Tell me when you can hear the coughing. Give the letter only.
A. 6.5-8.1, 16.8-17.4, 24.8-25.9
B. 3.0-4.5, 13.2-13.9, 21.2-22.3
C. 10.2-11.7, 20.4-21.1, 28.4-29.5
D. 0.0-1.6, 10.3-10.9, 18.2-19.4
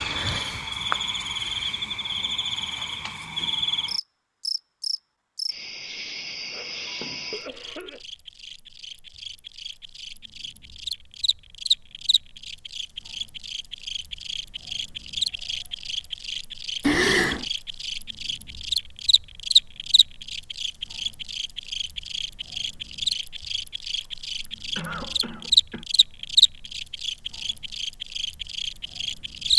A.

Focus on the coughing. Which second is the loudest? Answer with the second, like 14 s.
17 s.